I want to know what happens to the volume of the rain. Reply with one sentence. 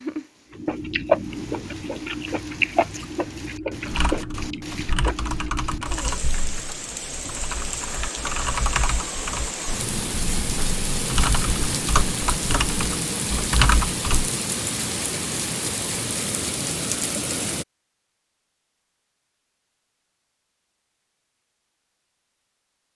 The volume of the rain goes up.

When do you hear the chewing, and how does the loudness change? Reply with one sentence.
You can hear the chewing from 0.5 to 6.0 s, getting quieter.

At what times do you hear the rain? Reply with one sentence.
You can hear the rain from 0.0 to 17.6 s.